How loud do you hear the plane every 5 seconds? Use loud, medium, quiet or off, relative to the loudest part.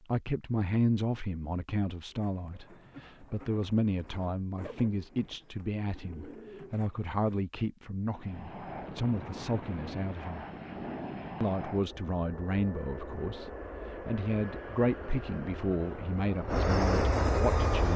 off, medium, medium, loud.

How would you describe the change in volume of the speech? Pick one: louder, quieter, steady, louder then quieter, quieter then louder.
steady.